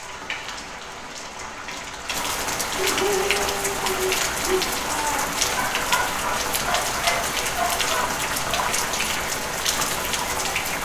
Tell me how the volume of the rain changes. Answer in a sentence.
The volume of the rain goes up.